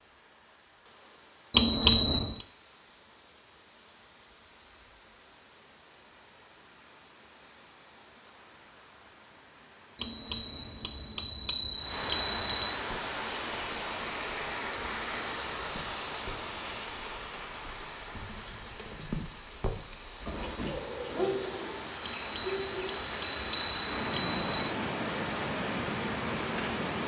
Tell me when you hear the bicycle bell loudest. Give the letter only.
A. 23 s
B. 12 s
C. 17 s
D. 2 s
D.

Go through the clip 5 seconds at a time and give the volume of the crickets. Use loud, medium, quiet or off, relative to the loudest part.
off, off, medium, loud, loud, medium.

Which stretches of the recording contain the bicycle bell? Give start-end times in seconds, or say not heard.
1.5-2.5, 10.0-12.8, 22.1-24.5.